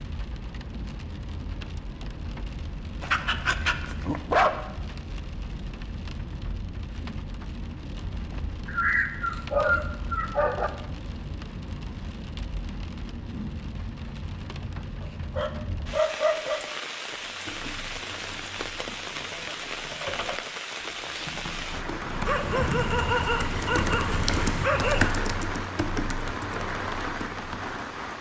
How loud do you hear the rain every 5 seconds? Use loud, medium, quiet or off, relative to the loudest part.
medium, medium, medium, loud, loud, loud.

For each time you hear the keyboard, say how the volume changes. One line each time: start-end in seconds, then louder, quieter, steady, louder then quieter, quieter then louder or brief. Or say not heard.
17.1-27.8 louder then quieter.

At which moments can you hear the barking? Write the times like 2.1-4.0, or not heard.
3.0-4.6, 8.7-10.7, 15.0-16.6, 22.2-25.1.